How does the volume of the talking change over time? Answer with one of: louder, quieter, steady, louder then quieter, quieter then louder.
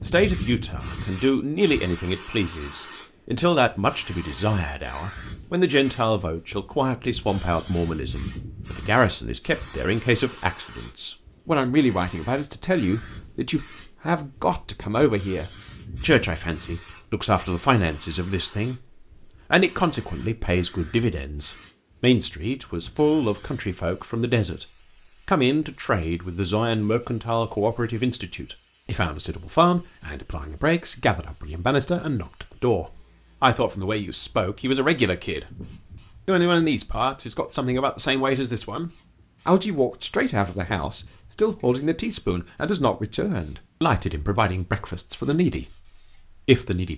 steady.